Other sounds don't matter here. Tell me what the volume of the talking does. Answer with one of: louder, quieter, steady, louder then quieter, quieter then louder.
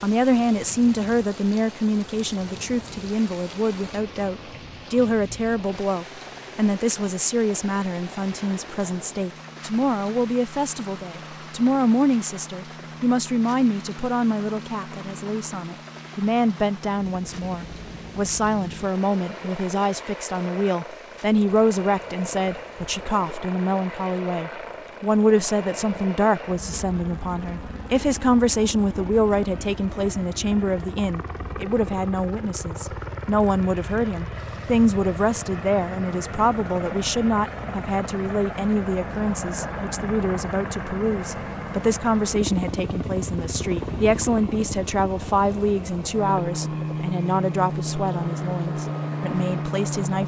steady.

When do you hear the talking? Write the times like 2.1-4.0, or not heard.
0.0-50.2.